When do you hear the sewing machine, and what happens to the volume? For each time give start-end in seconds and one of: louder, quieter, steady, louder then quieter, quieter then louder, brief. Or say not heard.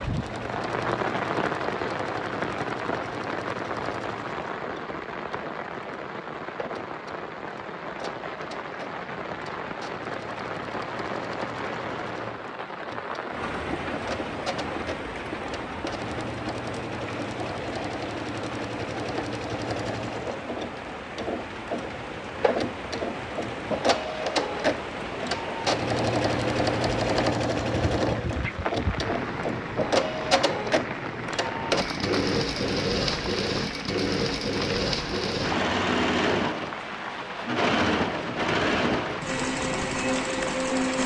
0.0-41.0 louder.